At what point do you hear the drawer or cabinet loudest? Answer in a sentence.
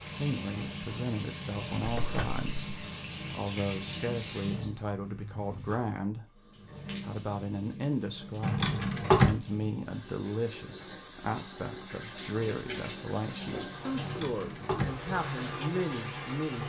The volume of the drawer or cabinet peaks at 9 seconds.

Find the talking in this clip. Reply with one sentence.
The talking can be heard from 0.0 to 6.2 s and from 7.0 to 16.6 s.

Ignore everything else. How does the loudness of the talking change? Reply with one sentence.
The volume of the talking stays about the same.